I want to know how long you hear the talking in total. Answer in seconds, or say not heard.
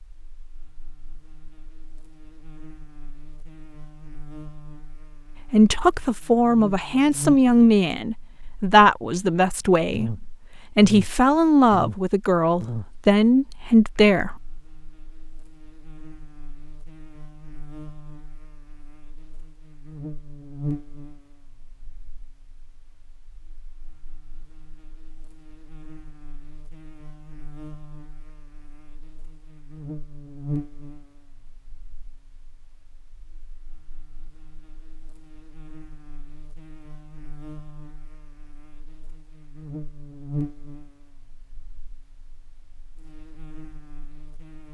9 s.